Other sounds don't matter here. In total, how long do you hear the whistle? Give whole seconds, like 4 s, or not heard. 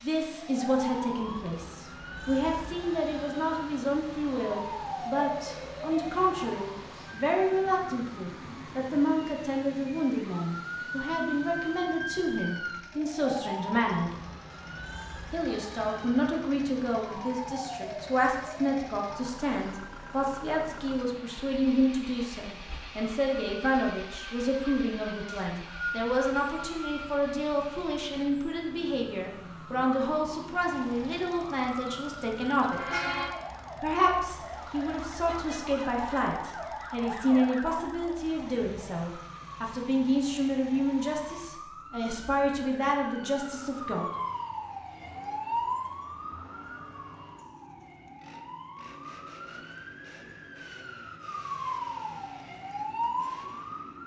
2 s.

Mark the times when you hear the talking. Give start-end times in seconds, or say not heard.
0.0-14.1, 15.3-33.0, 33.8-44.1.